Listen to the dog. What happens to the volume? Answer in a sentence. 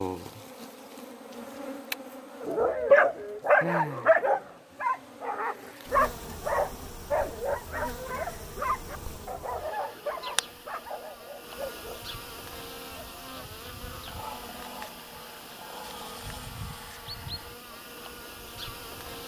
The volume of the dog goes down.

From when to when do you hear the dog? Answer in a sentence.
You can hear the dog from 2.4 to 12.0 s.